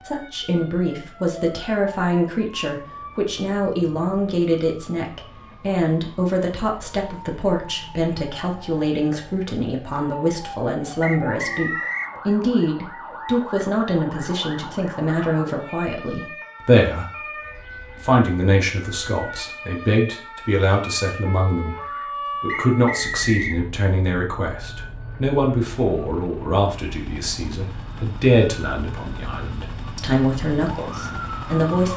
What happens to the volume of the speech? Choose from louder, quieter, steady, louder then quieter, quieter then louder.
steady.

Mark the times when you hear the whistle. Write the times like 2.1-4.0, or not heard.
11.0-12.2, 22.4-23.6.